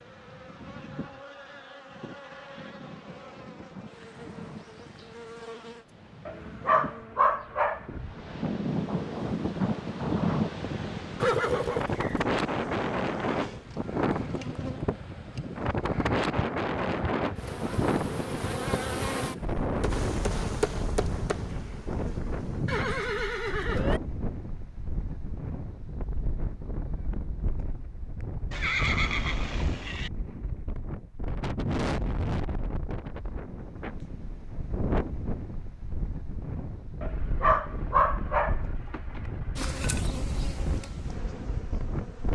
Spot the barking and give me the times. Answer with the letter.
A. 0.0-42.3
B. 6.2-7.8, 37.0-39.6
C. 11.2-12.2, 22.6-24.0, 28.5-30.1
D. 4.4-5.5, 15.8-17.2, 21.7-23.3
B.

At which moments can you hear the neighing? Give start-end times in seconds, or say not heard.
11.2-12.2, 22.6-24.0, 28.5-30.1.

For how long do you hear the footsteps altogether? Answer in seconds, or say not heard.
not heard.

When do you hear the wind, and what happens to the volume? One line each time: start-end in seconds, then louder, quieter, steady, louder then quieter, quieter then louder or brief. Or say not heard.
0.0-42.3 louder then quieter.